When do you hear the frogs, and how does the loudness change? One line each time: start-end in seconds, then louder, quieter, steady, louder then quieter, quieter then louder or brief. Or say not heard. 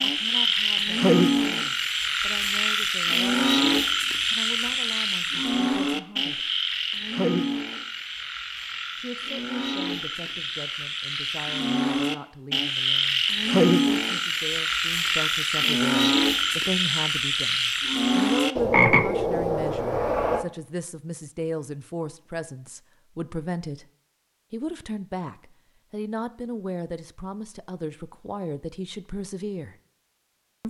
0.0-20.4 quieter then louder.